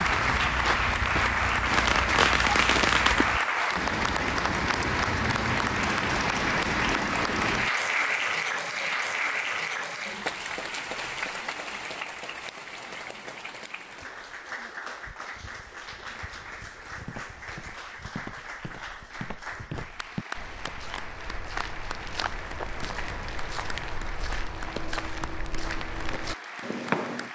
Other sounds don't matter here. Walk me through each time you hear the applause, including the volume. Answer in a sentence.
You can hear the applause from 0.0 to 27.3 s, getting quieter.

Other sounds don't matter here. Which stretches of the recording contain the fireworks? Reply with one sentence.
The fireworks can be heard from 1.6 to 3.2 s.